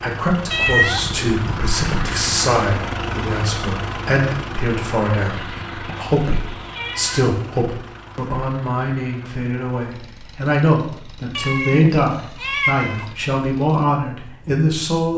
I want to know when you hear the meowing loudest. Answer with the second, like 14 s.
1 s.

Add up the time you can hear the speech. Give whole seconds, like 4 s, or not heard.
15 s.